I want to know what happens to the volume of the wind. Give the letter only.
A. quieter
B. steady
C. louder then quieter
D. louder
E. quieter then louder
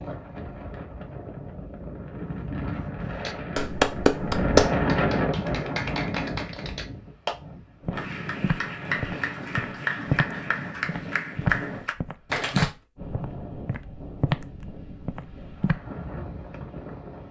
C.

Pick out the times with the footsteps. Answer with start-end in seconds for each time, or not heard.
7.8-15.8.